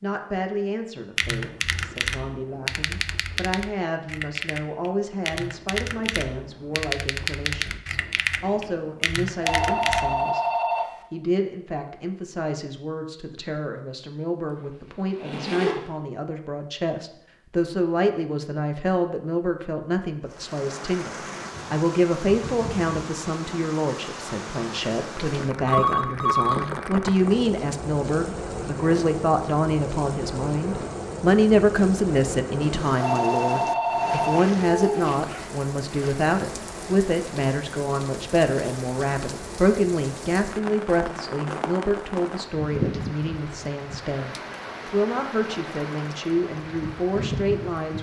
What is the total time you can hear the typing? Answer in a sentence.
The typing can be heard for 9 seconds in total.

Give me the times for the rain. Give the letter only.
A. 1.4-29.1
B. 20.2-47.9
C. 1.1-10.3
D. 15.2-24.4
B.